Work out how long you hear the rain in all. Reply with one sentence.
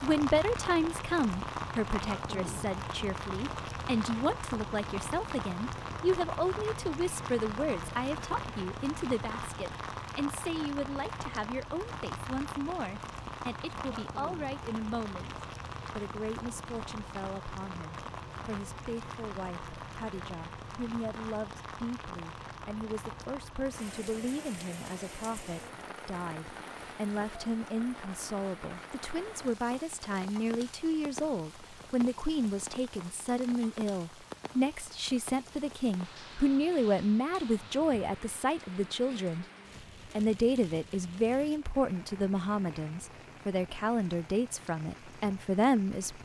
The rain can be heard for 46 seconds in total.